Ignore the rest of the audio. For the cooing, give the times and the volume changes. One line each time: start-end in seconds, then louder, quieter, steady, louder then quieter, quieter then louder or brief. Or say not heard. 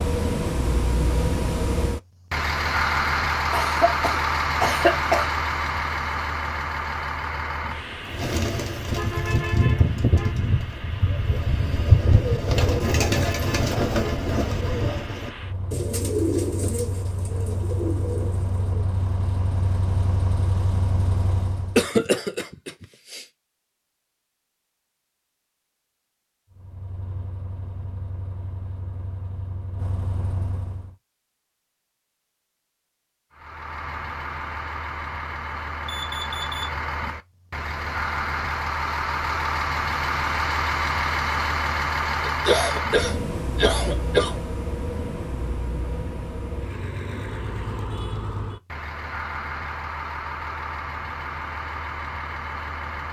8.0-18.9 quieter.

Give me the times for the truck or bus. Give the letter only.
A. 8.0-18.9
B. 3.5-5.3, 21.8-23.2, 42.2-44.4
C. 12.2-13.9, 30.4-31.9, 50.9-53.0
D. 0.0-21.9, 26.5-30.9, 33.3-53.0
D.